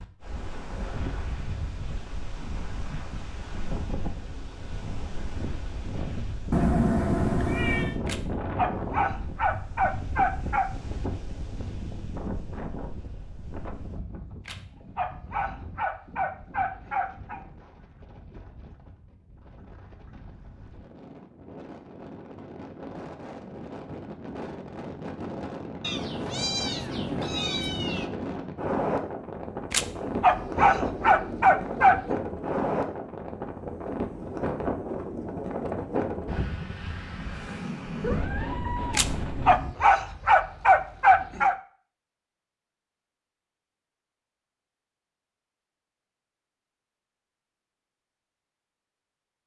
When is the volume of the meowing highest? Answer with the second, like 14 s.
7 s.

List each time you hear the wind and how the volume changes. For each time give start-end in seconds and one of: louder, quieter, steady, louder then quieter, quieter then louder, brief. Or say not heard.
0.0-39.5 quieter then louder.